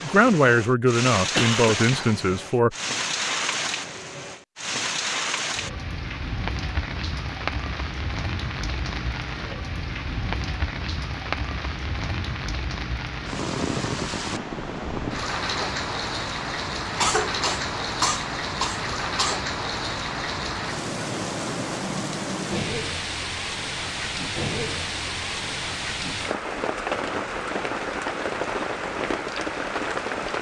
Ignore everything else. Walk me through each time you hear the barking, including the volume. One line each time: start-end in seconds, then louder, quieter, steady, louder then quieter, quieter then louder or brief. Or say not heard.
not heard.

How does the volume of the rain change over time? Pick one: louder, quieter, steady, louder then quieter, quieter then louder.
steady.